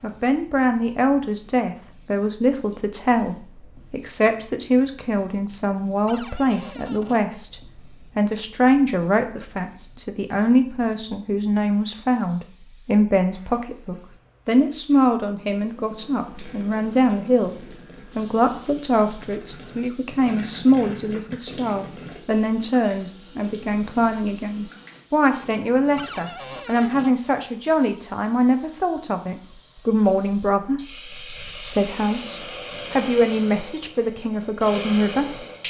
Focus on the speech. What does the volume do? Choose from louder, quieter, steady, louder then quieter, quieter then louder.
steady.